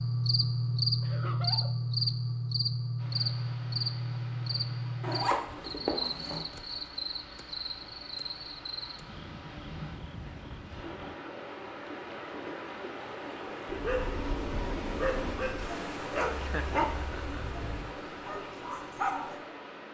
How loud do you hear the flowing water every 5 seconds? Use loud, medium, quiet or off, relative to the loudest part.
medium, medium, loud, loud.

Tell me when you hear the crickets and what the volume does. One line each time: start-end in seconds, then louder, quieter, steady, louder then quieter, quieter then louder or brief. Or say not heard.
0.0-11.2 quieter.